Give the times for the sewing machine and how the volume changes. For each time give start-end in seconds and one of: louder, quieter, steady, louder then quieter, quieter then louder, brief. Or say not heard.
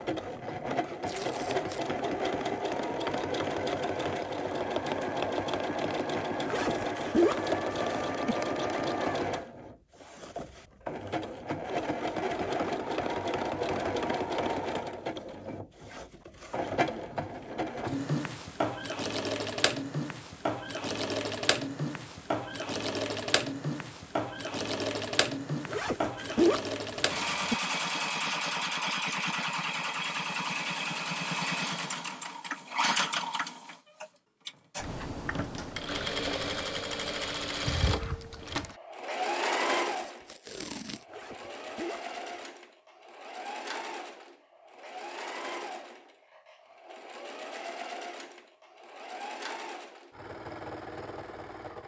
0.0-51.8 quieter.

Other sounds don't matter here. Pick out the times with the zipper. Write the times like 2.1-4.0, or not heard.
6.5-8.3, 25.6-27.6, 41.0-42.1.